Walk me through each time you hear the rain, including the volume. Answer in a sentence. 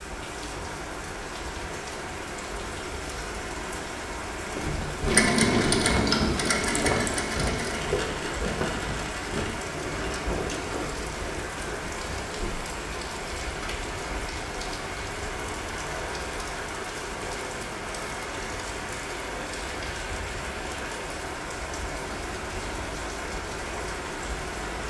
The rain can be heard from 0.0 to 24.8 s, at a steady volume.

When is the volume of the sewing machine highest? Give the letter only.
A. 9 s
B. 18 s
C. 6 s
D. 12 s
C.